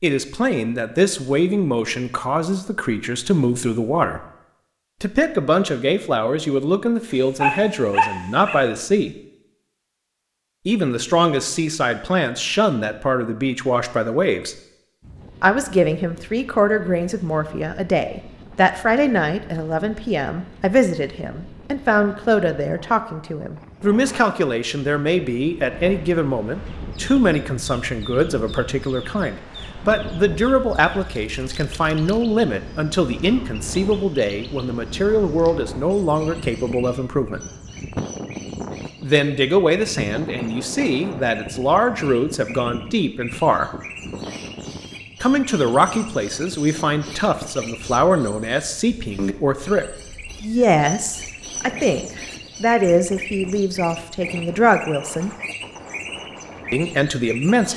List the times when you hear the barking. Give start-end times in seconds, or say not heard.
7.1-8.6.